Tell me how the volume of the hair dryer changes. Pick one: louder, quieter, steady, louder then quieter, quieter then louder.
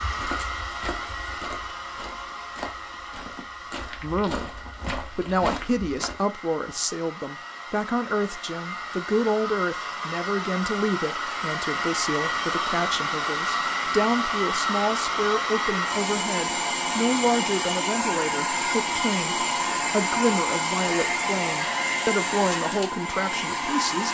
louder.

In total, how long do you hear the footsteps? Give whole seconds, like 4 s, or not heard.
6 s.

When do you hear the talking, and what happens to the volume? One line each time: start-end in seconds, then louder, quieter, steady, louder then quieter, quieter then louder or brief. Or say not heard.
4.0-24.0 steady.